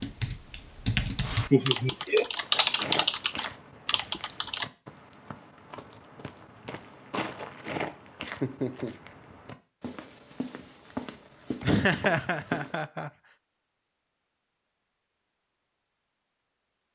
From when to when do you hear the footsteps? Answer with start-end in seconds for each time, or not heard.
2.4-12.8.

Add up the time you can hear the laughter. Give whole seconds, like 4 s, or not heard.
3 s.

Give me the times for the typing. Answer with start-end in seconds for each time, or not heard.
0.0-4.7.